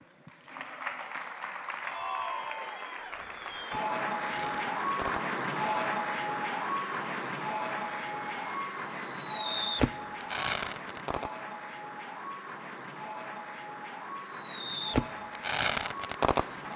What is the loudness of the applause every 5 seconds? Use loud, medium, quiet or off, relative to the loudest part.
loud, loud, medium, medium.